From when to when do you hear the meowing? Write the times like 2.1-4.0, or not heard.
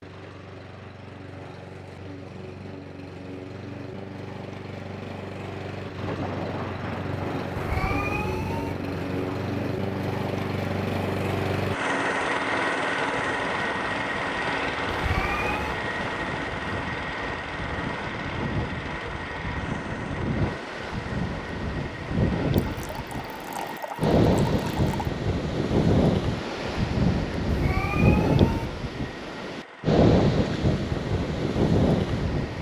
7.5-8.8, 14.9-15.8, 27.5-28.7.